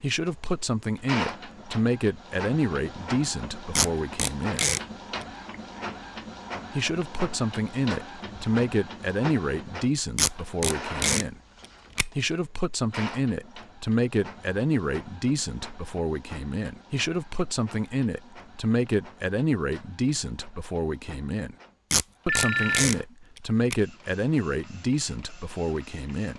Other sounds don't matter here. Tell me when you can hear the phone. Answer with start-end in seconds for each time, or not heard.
22.2-22.9.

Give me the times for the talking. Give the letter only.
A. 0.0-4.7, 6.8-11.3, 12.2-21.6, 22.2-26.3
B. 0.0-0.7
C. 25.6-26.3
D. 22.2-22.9
A.